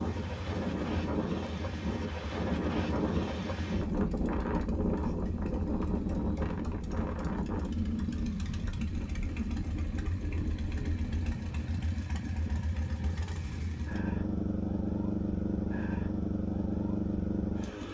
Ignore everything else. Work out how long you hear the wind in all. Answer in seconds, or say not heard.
12 s.